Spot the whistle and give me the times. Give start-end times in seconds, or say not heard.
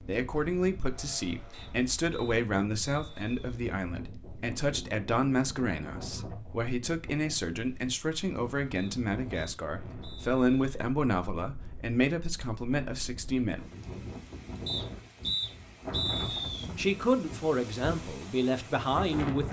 1.5-3.5, 8.8-10.8, 14.7-16.6.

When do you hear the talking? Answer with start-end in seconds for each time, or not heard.
0.1-13.7, 16.3-19.4.